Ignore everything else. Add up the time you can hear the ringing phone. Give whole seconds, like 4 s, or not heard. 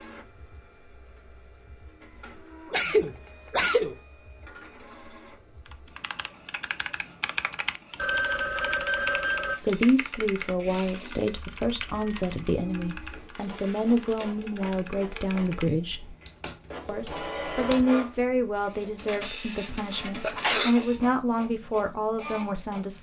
2 s.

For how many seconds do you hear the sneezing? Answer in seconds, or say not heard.
3 s.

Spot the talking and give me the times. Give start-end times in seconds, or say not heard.
9.6-16.1, 16.9-22.9.